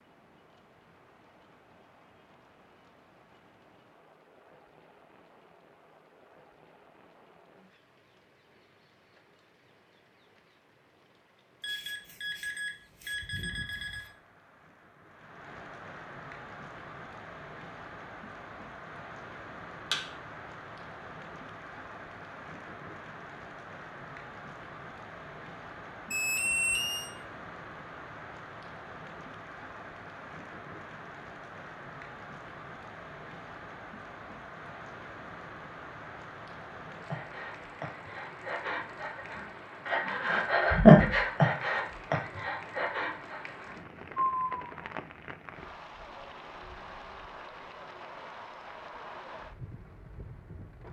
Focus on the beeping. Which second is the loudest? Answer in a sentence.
The loudest moment of the beeping is at 27 seconds.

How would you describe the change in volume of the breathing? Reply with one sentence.
The volume of the breathing goes up, then down.